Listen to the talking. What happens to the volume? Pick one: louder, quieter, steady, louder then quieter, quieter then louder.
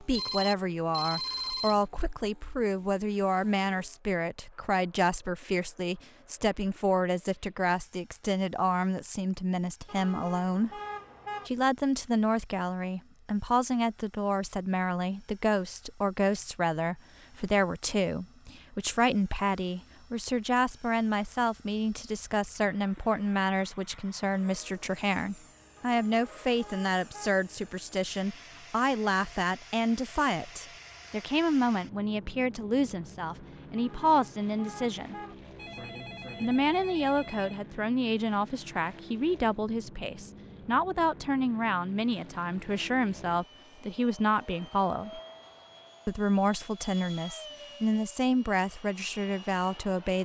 steady.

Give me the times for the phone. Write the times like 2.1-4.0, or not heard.
0.1-1.9, 35.5-37.6.